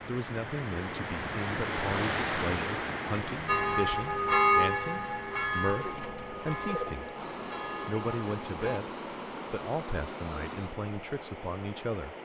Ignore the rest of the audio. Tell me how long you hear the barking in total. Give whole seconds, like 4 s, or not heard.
not heard.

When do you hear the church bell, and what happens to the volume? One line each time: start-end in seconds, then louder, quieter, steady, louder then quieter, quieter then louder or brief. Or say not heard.
3.5-8.8 quieter.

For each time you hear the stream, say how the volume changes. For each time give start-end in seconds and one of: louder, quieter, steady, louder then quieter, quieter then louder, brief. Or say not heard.
0.0-12.2 quieter.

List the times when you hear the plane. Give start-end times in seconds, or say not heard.
7.1-10.8.